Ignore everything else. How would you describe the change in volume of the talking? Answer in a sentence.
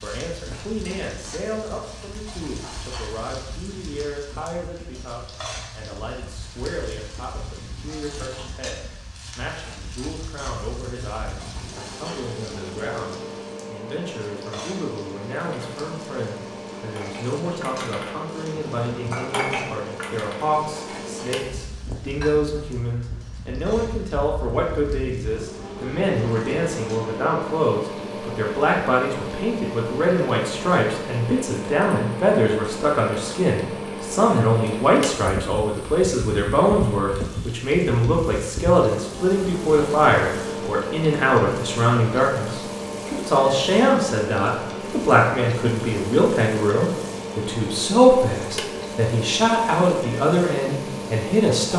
The loudness of the talking goes up.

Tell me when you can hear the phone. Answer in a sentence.
You can't hear the phone here.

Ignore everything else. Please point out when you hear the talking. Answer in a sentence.
The talking can be heard from 0.0 to 51.7 s.